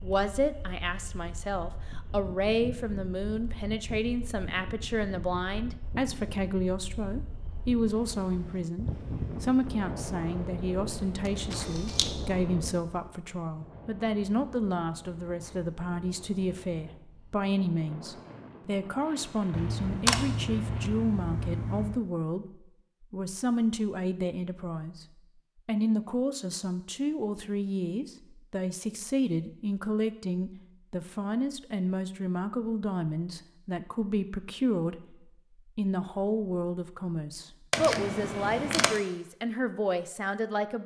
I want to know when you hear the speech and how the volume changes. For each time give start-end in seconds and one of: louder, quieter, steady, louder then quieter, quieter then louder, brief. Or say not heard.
0.0-25.1 steady
25.6-35.1 steady
35.8-40.8 steady.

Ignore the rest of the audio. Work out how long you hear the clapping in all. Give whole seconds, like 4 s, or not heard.
not heard.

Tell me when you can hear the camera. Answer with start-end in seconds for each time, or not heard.
11.2-12.1, 19.5-22.0, 37.7-39.0.